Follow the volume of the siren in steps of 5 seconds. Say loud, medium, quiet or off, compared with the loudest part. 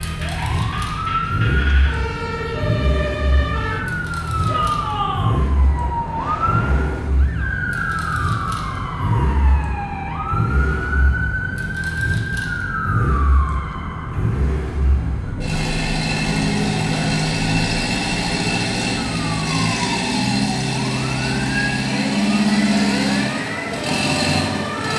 loud, loud, loud, medium, loud.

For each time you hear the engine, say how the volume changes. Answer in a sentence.
You can hear the engine from 0.0 to 24.9 s, getting louder.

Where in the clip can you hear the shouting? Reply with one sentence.
You can hear the shouting from 4.5 to 5.3 s.